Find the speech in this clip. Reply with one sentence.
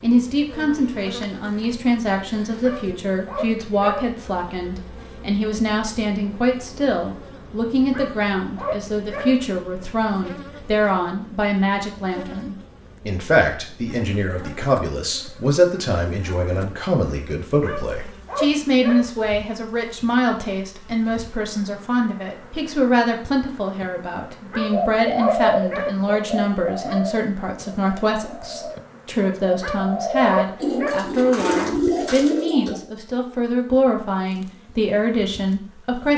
You can hear the speech from 0.0 to 36.1 s.